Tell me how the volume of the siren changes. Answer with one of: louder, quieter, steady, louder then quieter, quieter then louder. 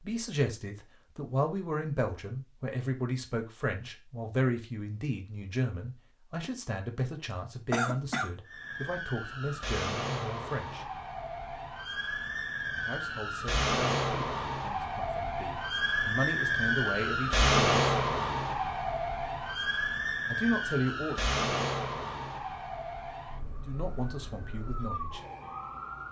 louder then quieter.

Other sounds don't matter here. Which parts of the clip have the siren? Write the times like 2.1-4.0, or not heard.
8.4-26.0.